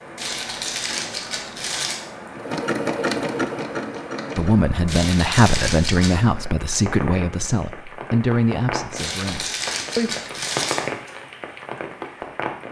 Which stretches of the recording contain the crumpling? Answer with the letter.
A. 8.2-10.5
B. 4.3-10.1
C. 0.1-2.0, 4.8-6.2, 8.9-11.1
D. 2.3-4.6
C.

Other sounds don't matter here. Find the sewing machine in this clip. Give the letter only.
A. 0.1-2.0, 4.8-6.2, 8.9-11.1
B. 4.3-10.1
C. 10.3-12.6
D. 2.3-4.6
D.